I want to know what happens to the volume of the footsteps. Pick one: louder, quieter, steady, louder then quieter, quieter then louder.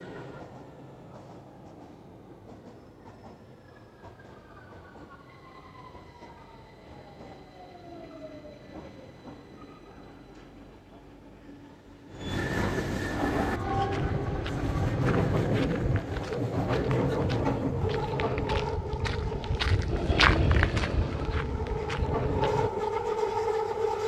louder then quieter.